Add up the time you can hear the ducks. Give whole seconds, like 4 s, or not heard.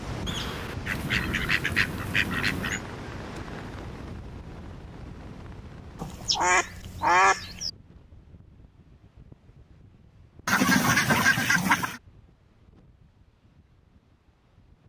6 s.